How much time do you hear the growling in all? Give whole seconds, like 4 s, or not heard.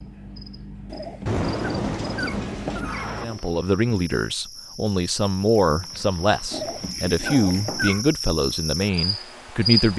4 s.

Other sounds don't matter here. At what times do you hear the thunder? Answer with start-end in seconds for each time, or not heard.
1.2-3.2.